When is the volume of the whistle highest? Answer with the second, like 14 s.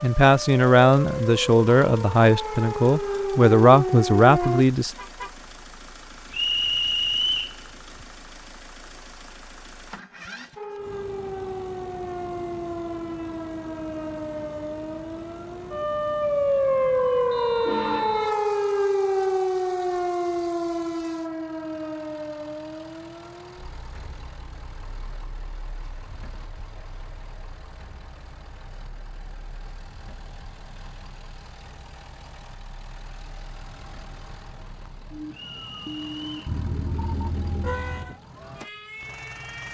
7 s.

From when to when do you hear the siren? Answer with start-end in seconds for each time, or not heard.
0.0-4.7, 10.6-39.6.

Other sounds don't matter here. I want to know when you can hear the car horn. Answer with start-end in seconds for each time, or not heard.
4.4-5.3, 16.7-18.3, 36.5-38.1.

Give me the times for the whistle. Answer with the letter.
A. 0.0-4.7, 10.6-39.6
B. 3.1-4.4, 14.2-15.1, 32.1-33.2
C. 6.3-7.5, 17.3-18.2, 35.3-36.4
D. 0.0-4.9
C.